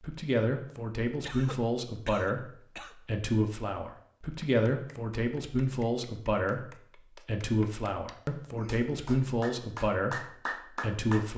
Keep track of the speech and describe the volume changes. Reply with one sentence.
The loudness of the speech stays about the same.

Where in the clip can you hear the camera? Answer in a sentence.
The camera can't be heard in this clip.